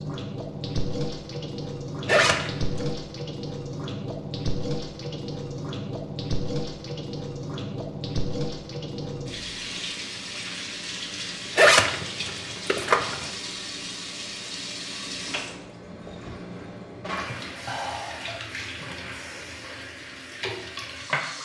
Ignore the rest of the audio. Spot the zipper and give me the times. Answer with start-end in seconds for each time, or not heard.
2.0-2.9, 11.6-13.3.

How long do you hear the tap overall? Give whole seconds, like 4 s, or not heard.
21 s.